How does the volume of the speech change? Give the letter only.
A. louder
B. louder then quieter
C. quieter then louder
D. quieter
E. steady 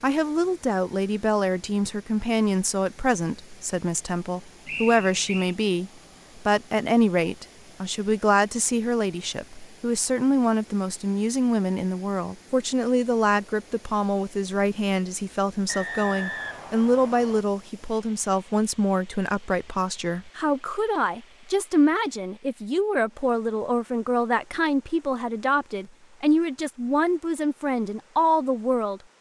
E.